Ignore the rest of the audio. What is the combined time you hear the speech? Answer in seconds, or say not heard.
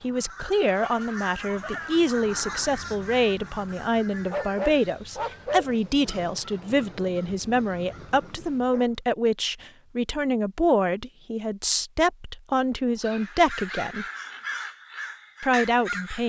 15 s.